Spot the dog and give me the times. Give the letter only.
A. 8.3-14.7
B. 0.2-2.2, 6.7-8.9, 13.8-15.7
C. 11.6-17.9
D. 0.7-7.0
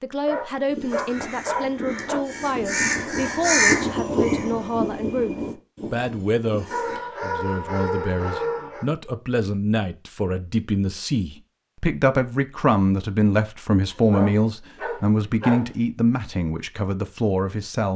B.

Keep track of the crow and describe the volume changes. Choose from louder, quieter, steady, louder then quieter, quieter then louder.
louder then quieter.